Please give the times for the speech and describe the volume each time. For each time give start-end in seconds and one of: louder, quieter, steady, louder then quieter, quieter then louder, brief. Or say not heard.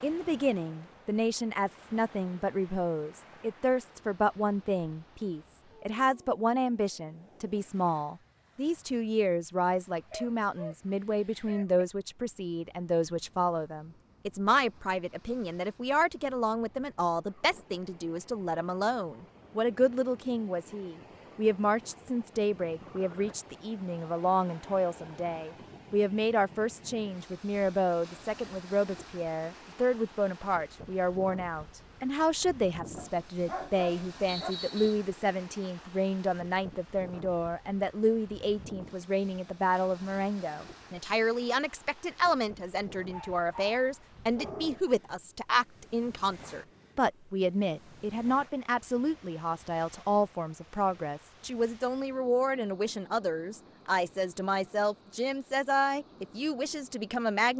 0.0-57.5 steady.